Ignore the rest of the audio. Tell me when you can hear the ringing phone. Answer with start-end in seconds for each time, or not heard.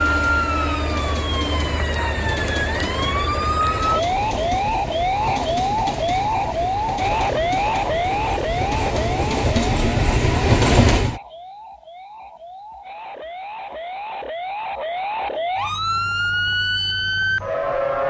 not heard.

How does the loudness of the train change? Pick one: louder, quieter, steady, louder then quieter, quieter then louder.
louder.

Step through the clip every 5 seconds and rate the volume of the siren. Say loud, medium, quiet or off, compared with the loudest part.
loud, loud, medium, loud.